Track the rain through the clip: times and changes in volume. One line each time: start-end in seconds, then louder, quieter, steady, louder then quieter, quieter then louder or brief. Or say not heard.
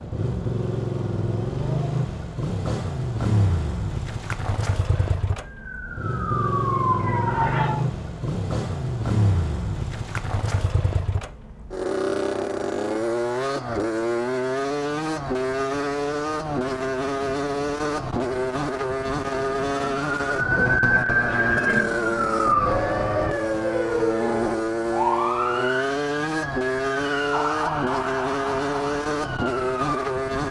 not heard.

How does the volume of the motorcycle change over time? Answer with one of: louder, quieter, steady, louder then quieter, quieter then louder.
steady.